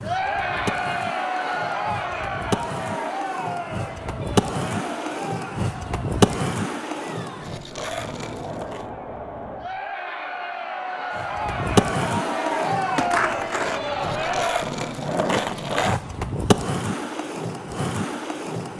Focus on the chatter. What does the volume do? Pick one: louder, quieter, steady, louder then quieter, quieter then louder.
quieter then louder.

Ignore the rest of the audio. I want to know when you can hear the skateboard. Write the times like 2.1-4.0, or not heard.
0.0-8.9, 11.1-18.7.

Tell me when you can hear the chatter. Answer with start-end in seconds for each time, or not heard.
0.0-14.7.